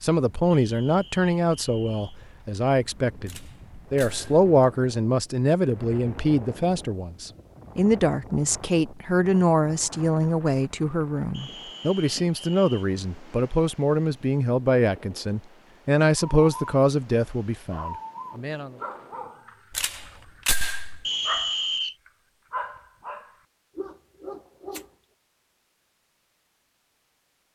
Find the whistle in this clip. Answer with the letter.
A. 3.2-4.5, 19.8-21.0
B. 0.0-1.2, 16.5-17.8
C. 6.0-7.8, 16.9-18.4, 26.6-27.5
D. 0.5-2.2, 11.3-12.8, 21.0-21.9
D.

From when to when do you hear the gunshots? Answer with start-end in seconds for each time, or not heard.
3.2-4.5, 19.8-21.0.